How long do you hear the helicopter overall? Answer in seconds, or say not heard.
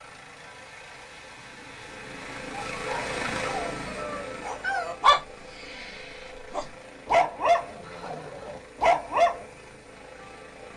11 s.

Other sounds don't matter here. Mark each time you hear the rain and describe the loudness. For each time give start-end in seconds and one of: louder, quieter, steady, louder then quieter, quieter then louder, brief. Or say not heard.
not heard.